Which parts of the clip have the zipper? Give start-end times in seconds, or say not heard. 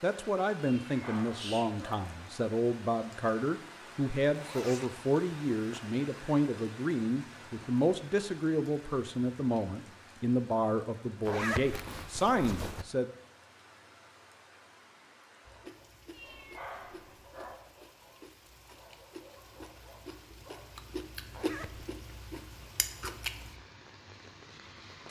4.3-5.8, 11.2-12.8, 21.3-21.9.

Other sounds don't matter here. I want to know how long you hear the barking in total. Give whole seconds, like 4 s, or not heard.
5 s.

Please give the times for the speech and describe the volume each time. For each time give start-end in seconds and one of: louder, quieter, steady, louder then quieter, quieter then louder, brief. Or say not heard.
0.0-13.1 steady.